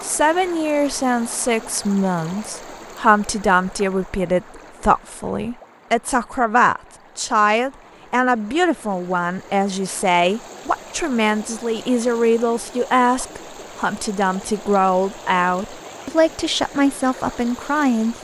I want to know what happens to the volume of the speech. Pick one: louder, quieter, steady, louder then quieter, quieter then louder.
steady.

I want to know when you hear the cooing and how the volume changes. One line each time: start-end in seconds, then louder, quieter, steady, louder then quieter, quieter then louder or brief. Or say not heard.
not heard.